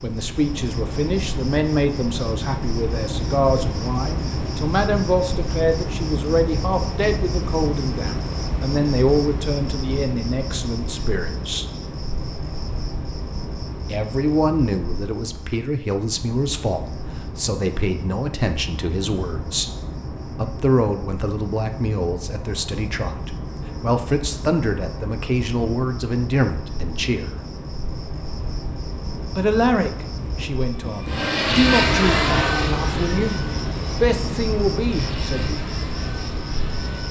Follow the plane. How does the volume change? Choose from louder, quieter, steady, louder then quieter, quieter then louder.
quieter.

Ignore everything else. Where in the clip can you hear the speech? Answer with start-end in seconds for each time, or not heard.
0.0-11.7, 13.9-19.7, 20.4-27.4, 29.4-33.4, 34.0-35.6.